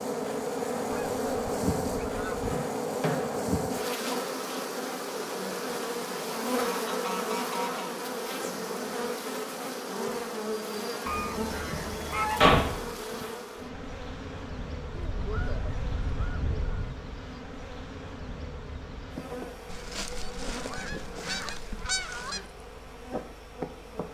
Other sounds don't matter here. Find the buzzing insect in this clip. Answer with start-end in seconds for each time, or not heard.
0.0-24.1.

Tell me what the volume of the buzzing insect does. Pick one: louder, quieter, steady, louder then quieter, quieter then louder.
quieter.